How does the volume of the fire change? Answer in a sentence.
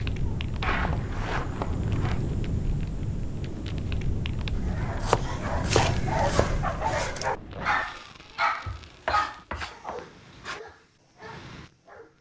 The loudness of the fire goes down.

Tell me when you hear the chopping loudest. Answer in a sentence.
The volume of the chopping peaks at 5 seconds.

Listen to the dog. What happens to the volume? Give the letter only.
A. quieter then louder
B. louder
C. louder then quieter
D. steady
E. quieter
E.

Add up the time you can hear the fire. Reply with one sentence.
You can hear the fire for 12 seconds altogether.